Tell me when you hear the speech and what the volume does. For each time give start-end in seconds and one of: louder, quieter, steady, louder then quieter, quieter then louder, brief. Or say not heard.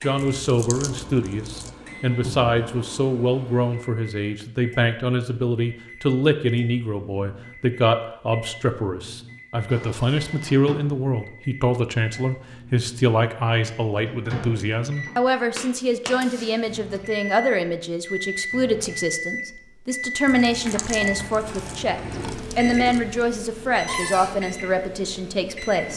0.0-25.9 steady.